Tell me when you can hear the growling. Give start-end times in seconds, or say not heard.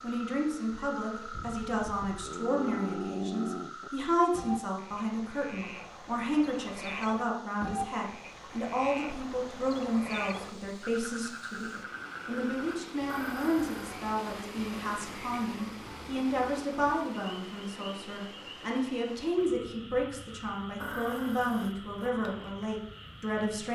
2.2-3.9, 13.1-13.9, 20.8-22.1.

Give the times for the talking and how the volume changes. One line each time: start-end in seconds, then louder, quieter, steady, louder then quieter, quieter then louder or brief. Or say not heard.
0.0-23.7 steady.